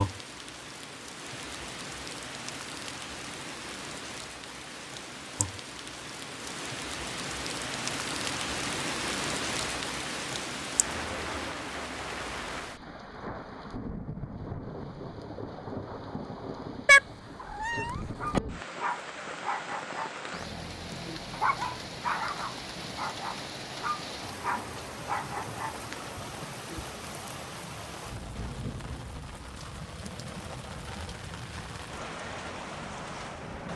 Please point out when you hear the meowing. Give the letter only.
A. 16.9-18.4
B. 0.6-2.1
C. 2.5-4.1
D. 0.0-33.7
A.